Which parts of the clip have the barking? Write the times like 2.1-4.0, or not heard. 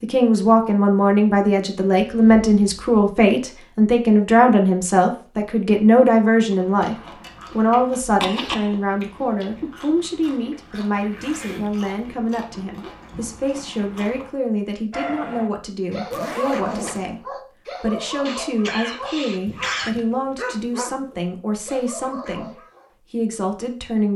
14.9-22.9.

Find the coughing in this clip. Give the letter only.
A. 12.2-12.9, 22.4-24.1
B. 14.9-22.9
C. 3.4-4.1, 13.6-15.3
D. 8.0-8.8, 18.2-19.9
D.